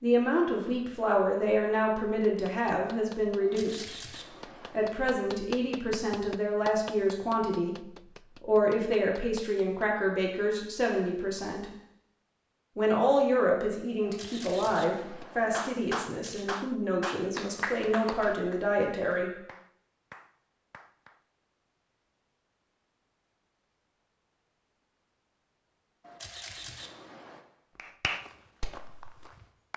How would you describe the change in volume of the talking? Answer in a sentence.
The volume of the talking stays about the same.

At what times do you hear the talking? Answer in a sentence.
You can hear the talking from 0.0 to 4.0 s, from 4.7 to 11.7 s and from 12.8 to 19.3 s.